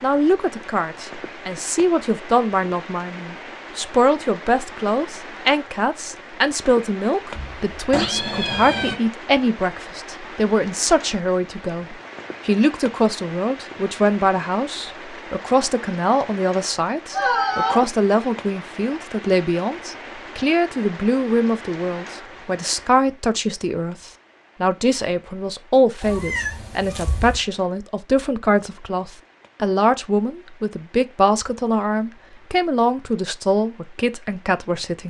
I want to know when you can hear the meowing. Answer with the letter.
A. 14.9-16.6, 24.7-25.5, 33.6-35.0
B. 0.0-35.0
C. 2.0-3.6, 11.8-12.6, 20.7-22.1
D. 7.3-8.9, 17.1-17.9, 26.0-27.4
D.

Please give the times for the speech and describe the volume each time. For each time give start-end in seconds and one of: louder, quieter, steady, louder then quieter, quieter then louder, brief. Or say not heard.
0.0-35.0 steady.